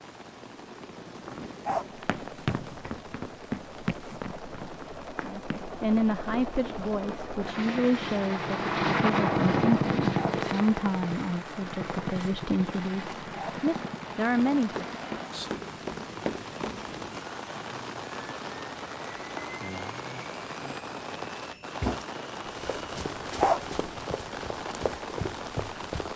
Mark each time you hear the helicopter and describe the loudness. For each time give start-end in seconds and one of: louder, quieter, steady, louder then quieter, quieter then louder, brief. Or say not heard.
0.0-24.1 louder then quieter.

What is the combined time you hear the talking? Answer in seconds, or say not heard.
10 s.